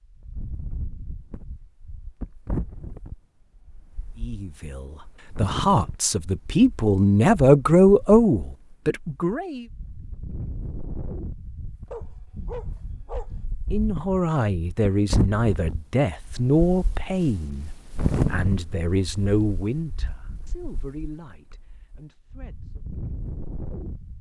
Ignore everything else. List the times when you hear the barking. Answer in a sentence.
The barking can be heard from 11.9 to 13.3 s.